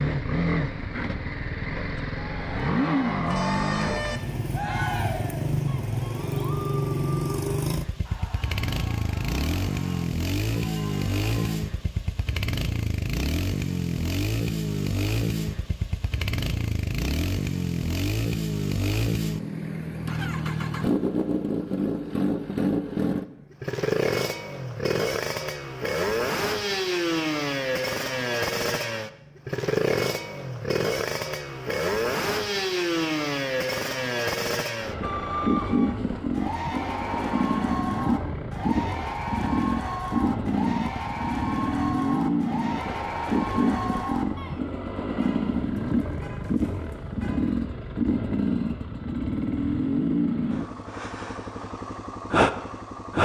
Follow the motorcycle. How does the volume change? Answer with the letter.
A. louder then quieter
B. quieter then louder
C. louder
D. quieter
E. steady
E.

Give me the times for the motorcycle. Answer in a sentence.
You can hear the motorcycle from 0.0 to 53.2 s.